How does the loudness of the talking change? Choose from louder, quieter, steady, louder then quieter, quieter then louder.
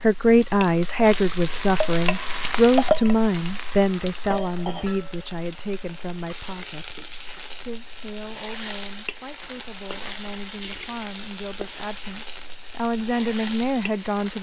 quieter then louder.